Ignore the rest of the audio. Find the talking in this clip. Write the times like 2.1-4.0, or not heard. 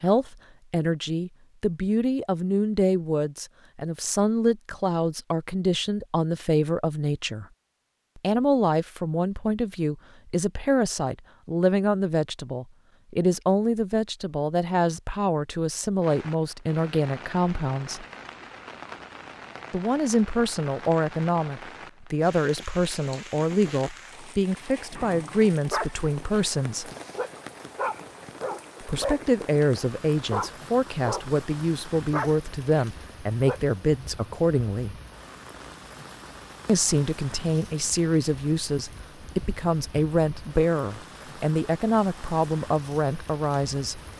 0.0-7.5, 8.2-18.1, 19.7-26.9, 28.8-35.0, 36.6-44.0.